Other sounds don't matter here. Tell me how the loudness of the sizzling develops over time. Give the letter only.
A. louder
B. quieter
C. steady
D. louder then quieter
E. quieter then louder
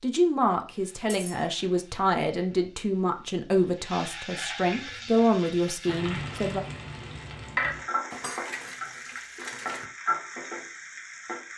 A.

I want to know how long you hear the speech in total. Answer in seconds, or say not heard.
7 s.